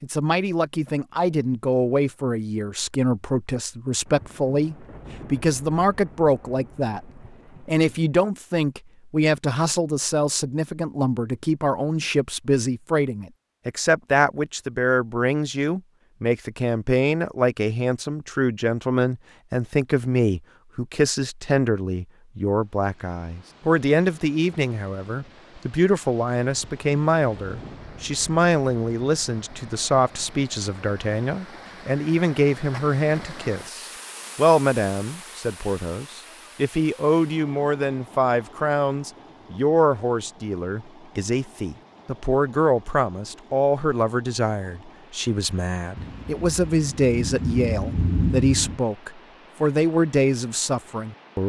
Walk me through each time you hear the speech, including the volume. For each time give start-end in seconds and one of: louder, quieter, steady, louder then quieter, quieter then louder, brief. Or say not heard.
0.0-51.4 steady.